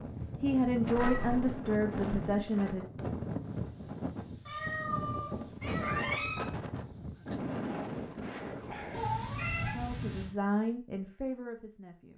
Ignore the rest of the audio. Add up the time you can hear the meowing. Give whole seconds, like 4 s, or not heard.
4 s.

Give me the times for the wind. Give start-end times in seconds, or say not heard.
0.0-9.1.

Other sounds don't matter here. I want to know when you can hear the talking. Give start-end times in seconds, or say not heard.
0.4-2.9, 9.7-12.1.